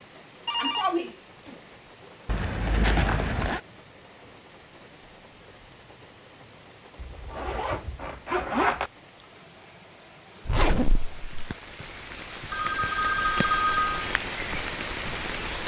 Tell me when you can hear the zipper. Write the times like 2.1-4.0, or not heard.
2.2-3.6, 7.0-8.9, 10.4-11.5.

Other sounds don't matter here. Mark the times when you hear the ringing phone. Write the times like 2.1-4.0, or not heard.
0.5-1.6, 12.5-14.2.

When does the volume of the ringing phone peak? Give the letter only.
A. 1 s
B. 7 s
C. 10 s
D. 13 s
D.